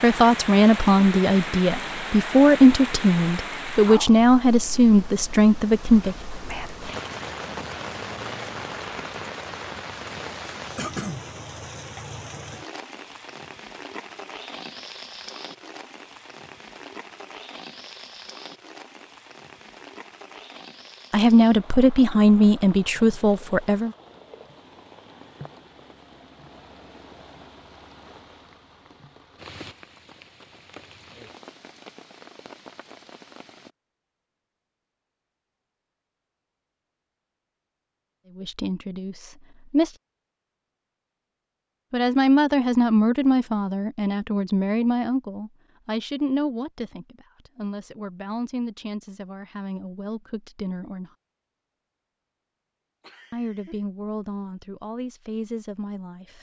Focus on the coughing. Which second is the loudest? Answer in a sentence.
The loudest moment of the coughing is at 11 seconds.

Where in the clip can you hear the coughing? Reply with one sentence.
The coughing can be heard from 10.8 to 11.2 s and from 53.0 to 53.9 s.